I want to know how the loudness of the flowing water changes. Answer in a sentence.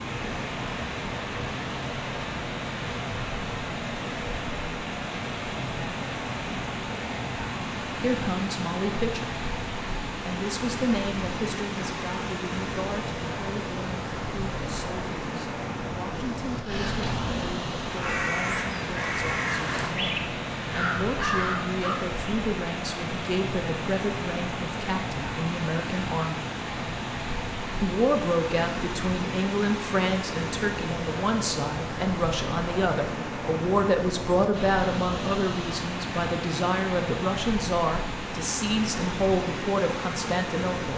The loudness of the flowing water stays about the same.